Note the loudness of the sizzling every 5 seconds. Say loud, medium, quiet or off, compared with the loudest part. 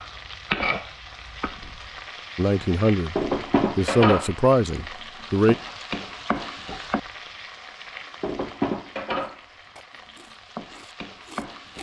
loud, loud, medium.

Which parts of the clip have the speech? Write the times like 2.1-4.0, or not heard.
2.4-5.5.